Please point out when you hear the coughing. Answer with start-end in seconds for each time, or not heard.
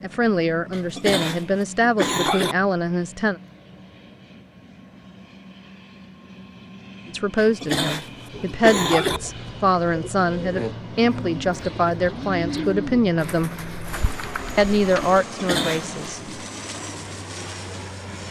0.7-2.5, 7.3-9.2, 15.2-15.9.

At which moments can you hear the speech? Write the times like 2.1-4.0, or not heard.
0.0-3.4, 7.1-13.5, 14.6-16.2.